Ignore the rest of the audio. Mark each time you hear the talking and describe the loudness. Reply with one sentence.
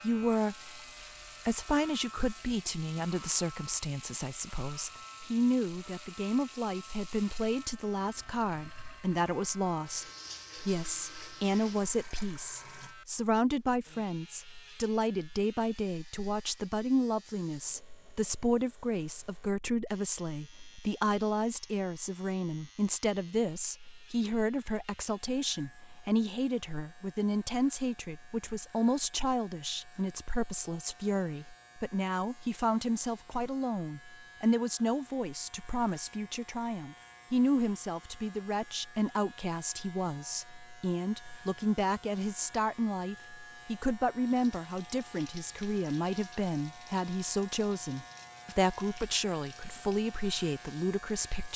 The talking can be heard briefly from 0.0 to 0.8 s; and from 1.4 to 51.5 s, at a steady volume.